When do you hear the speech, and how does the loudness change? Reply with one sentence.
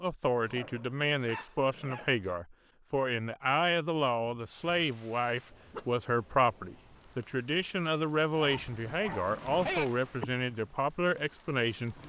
You can hear the speech from 0.0 to 11.9 s, at a steady volume.